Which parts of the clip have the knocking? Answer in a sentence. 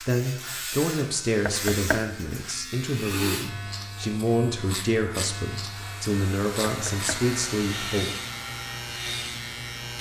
You can hear the knocking from 1.4 to 2.0 s and from 6.7 to 7.2 s.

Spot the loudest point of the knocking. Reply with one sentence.
The volume of the knocking peaks at 2 seconds.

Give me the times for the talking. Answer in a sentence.
You can hear the talking from 0.1 to 8.2 s.